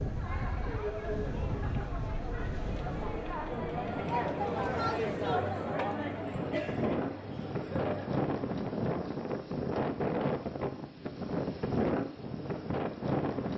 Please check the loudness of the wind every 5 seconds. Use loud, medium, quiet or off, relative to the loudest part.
medium, loud, loud.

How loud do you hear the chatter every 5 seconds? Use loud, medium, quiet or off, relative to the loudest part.
loud, loud, off.